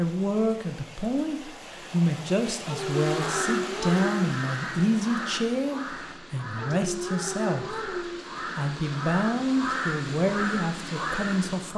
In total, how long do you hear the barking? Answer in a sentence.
You can hear the barking for 3 seconds altogether.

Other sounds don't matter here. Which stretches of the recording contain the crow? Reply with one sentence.
You can hear the crow from 2.8 to 11.7 s.